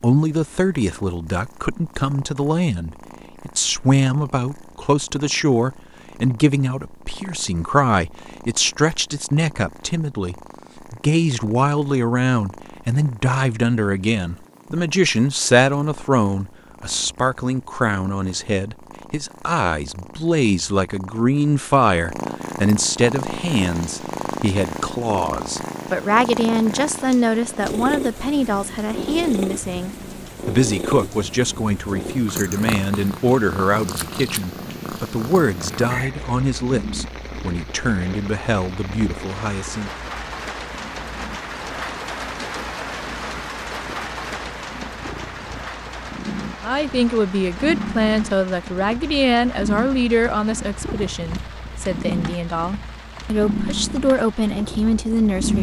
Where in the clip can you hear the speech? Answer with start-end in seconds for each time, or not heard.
0.0-39.9, 46.6-55.5.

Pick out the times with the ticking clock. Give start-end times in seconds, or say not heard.
not heard.